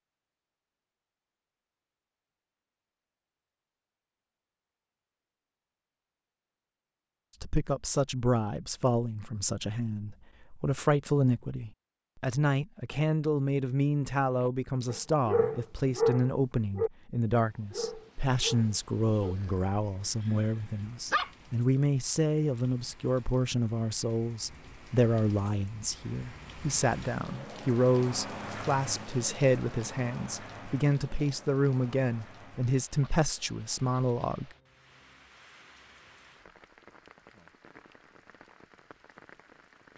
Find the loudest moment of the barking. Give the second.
16 s.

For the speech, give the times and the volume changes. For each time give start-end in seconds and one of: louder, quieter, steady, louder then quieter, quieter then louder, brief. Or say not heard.
7.4-34.5 steady.